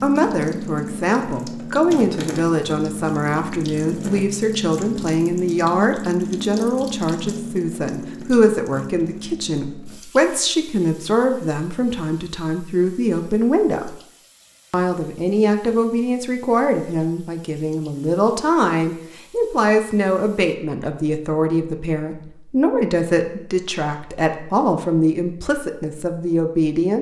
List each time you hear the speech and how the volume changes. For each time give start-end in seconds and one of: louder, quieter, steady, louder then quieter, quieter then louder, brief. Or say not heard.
0.0-13.9 steady
14.7-26.9 steady.